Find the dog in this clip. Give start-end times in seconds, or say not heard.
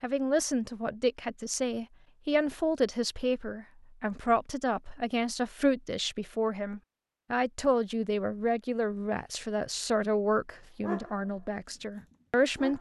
10.8-12.7.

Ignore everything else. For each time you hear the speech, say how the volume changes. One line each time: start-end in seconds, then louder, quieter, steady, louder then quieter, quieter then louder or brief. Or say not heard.
0.0-12.7 steady.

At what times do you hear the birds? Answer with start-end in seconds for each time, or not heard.
not heard.